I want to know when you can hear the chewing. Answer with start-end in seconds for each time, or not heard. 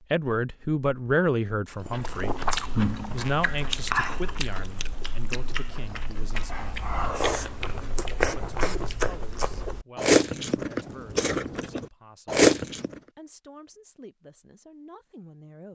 1.8-13.0.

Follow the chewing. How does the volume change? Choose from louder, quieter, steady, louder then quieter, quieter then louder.
quieter then louder.